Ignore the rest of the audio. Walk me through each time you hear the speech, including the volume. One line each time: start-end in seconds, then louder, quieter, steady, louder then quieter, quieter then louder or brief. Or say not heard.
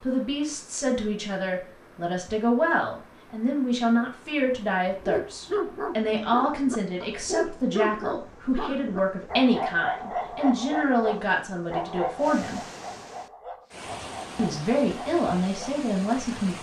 0.0-12.6 steady
14.3-16.5 brief.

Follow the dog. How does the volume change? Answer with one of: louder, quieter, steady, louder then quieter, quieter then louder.
quieter.